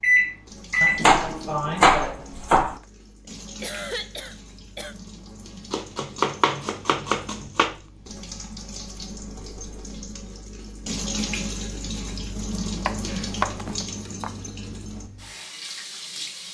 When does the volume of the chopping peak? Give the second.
2 s.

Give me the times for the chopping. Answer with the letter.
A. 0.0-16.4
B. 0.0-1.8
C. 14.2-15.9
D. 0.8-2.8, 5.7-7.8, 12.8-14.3
D.